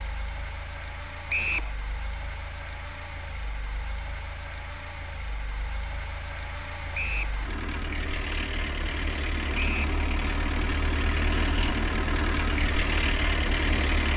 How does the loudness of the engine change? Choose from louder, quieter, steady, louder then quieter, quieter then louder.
louder.